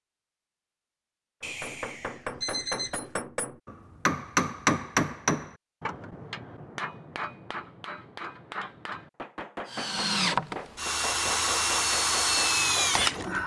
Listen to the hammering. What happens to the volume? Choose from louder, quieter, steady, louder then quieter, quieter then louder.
louder then quieter.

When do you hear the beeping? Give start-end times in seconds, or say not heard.
1.4-3.0.